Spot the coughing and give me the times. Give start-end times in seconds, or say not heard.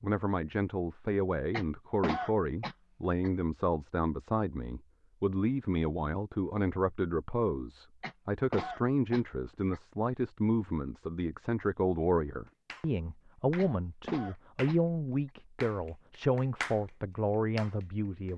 1.5-3.3, 8.0-9.8, 13.6-15.3.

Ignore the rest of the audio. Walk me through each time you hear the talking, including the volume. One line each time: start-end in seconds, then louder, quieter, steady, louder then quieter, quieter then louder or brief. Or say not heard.
0.0-18.3 steady.